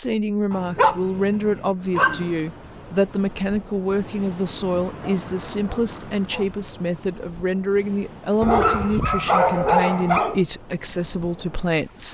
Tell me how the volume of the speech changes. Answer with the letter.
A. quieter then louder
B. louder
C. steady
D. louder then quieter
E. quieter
C.